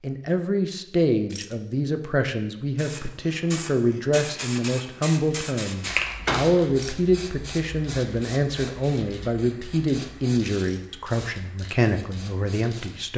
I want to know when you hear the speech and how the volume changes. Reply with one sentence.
You can hear the speech from 0.0 to 13.1 s, at a steady volume.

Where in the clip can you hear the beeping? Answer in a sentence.
The beeping can't be heard in this clip.